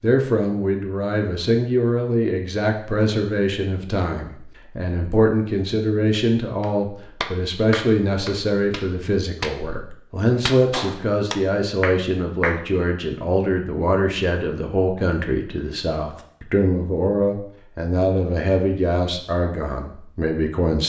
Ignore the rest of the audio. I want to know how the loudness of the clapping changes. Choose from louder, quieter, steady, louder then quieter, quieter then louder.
quieter then louder.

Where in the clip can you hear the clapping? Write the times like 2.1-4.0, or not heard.
6.6-12.7.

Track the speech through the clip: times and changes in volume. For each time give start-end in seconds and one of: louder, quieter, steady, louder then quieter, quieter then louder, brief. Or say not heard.
0.0-20.8 steady.